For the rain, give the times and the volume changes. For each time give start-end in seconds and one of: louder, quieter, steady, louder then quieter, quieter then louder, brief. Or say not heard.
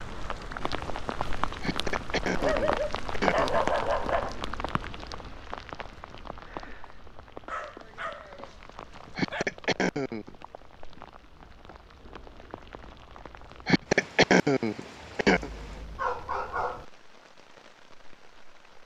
0.0-18.8 quieter.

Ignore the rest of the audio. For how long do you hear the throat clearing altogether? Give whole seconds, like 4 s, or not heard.
5 s.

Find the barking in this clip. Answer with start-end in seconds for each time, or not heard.
2.4-4.3, 7.5-9.4, 15.4-16.9.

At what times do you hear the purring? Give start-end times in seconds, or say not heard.
not heard.